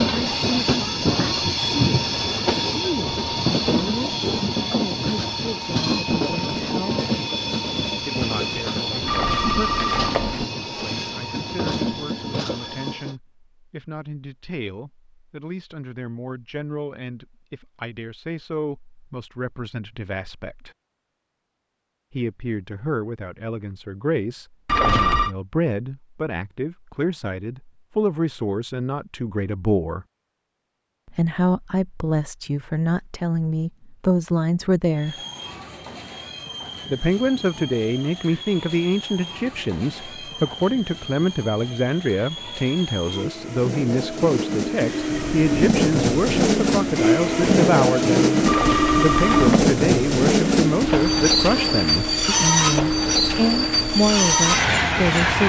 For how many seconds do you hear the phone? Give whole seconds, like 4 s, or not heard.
3 s.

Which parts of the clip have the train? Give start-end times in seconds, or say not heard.
0.0-13.2, 35.0-55.4.